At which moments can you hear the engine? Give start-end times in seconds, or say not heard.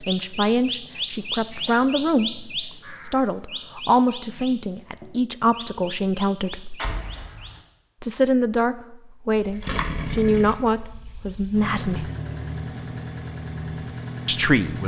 9.3-14.8.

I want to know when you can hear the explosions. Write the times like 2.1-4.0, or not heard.
6.8-7.6.